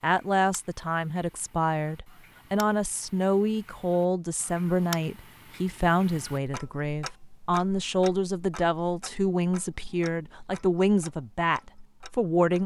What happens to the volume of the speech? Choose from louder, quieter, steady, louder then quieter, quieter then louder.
steady.